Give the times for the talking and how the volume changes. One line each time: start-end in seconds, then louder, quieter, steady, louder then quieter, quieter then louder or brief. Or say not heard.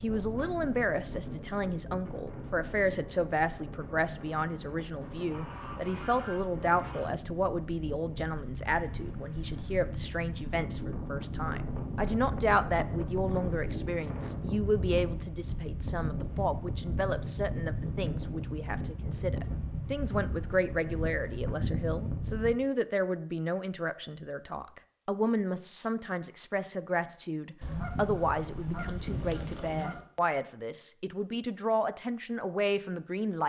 0.0-33.4 steady.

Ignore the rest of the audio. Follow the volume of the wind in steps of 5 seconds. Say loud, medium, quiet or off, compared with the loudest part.
medium, medium, loud, loud, loud, off, off.